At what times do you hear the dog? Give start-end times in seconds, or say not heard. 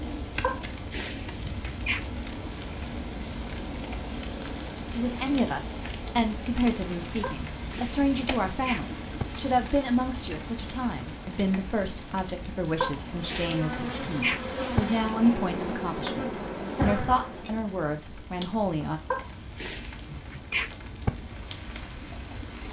0.4-2.0, 7.2-9.2, 12.8-14.8, 19.1-21.1.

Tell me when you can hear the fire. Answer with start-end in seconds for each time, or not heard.
0.0-22.6.